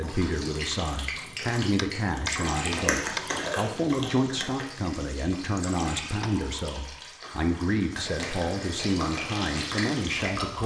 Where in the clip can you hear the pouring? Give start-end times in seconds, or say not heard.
2.2-3.6, 5.5-7.3.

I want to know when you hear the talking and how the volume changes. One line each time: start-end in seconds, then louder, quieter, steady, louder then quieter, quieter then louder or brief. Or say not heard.
0.0-10.6 steady.